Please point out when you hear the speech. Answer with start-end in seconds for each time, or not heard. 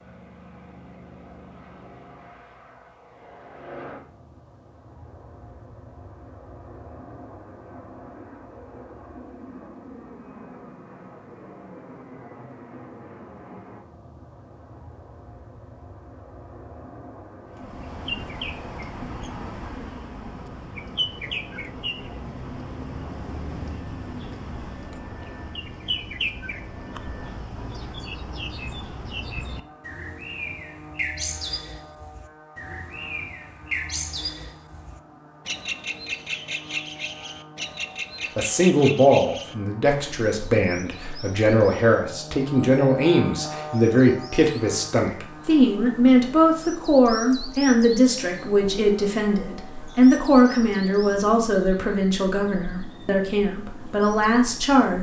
38.4-54.9.